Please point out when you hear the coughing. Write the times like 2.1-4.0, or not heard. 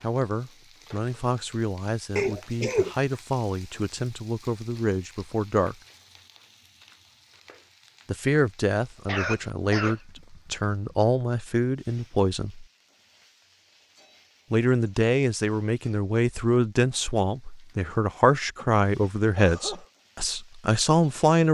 2.1-3.0, 9.1-10.9, 18.6-19.9.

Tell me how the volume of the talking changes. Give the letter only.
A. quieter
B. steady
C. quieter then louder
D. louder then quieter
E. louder
E.